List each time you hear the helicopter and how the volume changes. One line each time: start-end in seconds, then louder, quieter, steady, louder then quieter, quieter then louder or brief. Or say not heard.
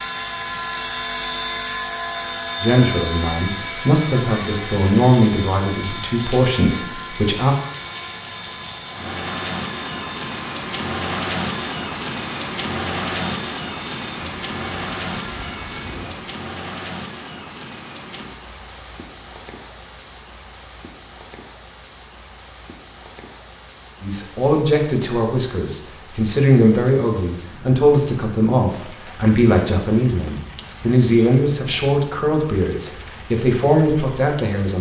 0.0-16.3 quieter.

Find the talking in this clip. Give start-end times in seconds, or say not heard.
2.6-7.5, 24.0-34.7.